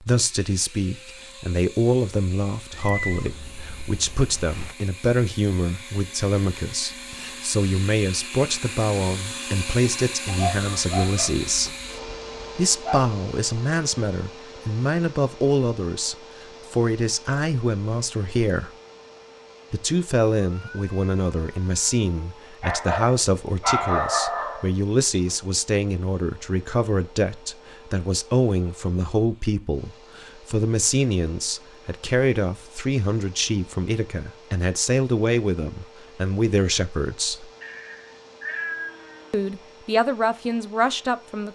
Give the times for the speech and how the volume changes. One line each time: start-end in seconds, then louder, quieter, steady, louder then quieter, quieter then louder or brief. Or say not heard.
0.0-11.8 steady
12.6-18.7 steady
19.7-37.5 steady
39.3-41.5 brief.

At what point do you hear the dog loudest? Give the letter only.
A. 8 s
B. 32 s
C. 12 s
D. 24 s
D.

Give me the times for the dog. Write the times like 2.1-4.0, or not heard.
10.2-13.1, 22.6-24.7.